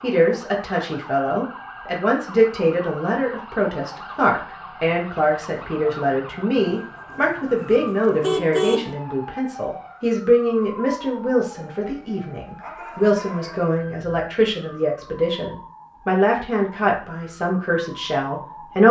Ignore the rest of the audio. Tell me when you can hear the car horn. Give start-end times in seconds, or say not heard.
6.5-8.9.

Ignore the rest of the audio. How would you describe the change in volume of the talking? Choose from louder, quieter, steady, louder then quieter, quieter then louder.
steady.